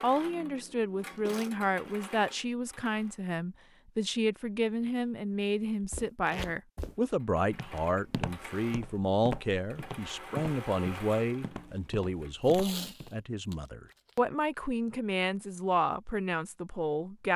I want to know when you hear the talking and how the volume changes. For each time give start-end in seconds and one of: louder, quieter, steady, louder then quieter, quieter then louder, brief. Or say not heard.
0.0-17.3 steady.